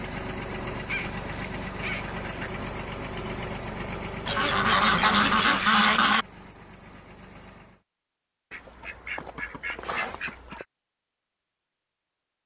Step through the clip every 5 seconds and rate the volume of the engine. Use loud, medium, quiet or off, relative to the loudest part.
loud, medium, off.